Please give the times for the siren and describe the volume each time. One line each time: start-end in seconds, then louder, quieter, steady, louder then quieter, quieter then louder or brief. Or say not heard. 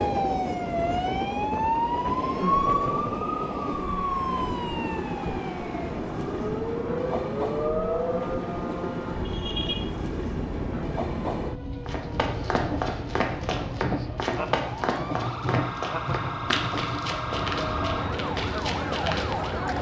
0.0-19.7 quieter then louder.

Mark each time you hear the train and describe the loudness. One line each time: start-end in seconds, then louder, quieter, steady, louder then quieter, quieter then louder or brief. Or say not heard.
0.0-19.7 steady.